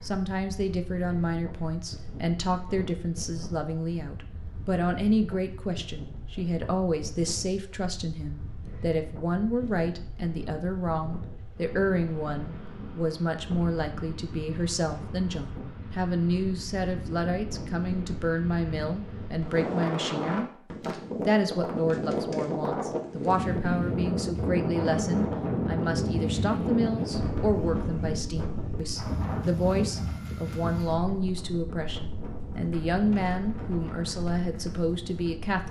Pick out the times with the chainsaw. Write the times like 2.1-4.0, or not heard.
not heard.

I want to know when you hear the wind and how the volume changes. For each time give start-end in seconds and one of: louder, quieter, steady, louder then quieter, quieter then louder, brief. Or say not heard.
0.0-35.6 louder then quieter.